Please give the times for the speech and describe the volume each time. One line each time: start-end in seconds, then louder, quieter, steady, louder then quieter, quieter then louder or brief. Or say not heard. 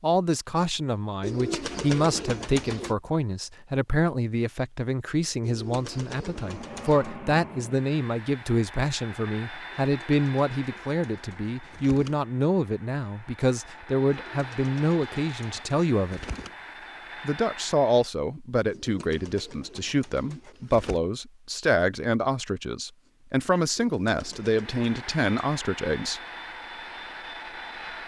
0.0-16.2 steady
17.2-26.2 steady.